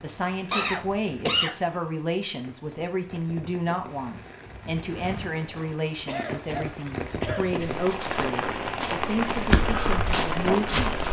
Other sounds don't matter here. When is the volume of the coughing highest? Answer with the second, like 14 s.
1 s.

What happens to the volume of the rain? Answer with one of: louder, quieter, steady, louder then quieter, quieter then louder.
louder.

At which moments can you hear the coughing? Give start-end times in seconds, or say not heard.
0.5-1.6, 6.0-7.8.